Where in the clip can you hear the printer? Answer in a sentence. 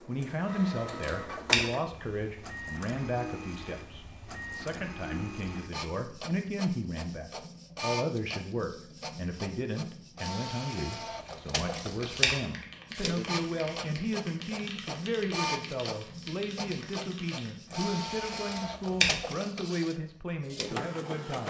You can hear the printer from 0.0 to 21.4 s.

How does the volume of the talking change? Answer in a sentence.
The loudness of the talking stays about the same.